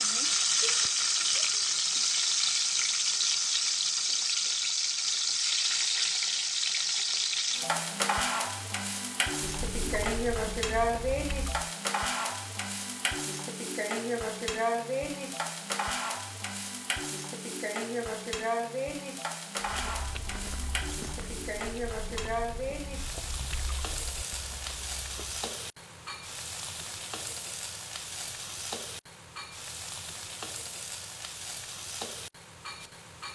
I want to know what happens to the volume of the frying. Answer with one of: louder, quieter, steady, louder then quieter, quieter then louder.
quieter.